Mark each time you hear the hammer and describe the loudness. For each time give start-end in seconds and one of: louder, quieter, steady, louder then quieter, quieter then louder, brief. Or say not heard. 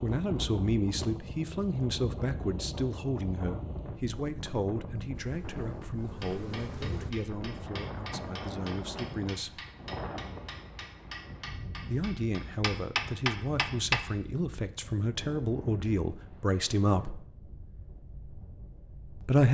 6.2-14.0 louder.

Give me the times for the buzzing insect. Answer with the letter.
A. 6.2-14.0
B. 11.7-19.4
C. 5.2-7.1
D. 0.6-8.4
C.